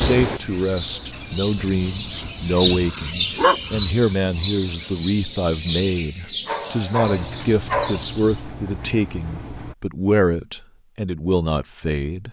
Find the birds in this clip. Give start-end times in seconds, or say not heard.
0.0-8.4.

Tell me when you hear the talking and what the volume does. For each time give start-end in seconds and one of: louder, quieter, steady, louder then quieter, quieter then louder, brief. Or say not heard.
0.0-12.2 steady.